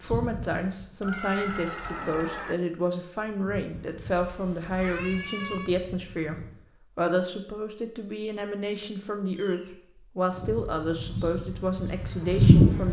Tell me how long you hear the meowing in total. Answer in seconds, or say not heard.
3 s.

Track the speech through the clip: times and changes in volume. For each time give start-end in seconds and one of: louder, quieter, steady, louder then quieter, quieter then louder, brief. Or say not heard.
0.0-12.8 steady.